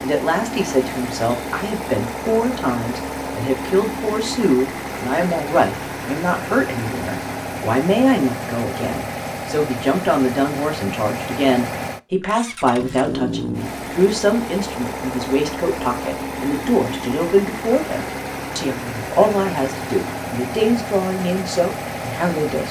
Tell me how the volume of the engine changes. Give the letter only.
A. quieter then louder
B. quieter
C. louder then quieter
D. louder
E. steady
E.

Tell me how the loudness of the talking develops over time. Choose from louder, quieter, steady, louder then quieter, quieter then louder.
steady.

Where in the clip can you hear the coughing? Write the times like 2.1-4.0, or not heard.
not heard.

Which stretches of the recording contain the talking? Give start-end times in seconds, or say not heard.
0.0-22.6.